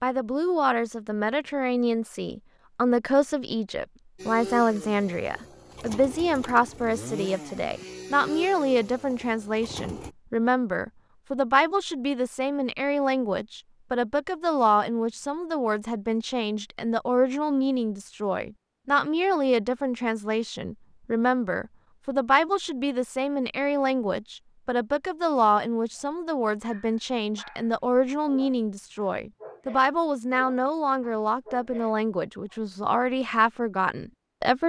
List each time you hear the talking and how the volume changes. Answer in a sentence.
You can hear the talking from 0.0 to 34.6 s, at a steady volume.